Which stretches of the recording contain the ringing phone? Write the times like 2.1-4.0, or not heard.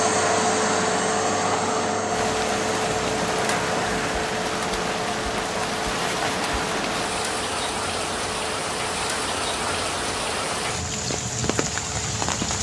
not heard.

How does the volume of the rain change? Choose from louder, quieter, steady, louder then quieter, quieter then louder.
steady.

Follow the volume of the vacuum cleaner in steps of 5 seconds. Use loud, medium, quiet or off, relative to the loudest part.
loud, medium, quiet.